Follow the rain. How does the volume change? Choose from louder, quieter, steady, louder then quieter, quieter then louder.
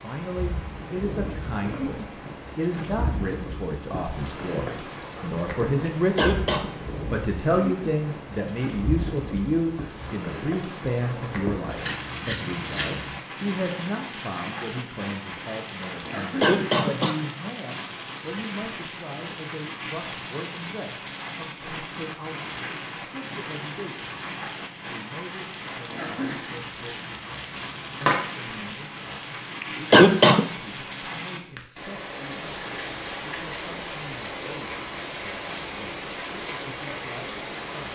steady.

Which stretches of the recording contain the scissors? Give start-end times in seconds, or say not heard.
11.8-13.2, 26.4-28.1.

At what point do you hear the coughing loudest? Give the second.
30 s.